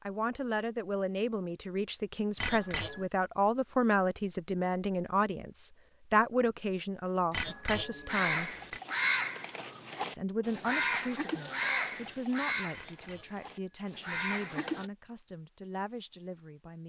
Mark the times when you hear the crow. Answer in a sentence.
The crow can be heard from 8.1 to 14.9 s.